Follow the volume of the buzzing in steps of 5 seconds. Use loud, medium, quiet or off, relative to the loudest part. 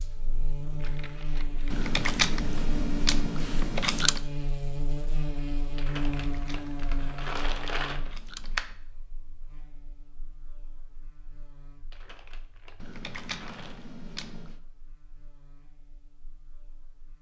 loud, loud, quiet, quiet.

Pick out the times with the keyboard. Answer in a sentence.
The keyboard can be heard from 1.7 to 4.2 s, from 6.2 to 8.8 s and from 12.8 to 14.6 s.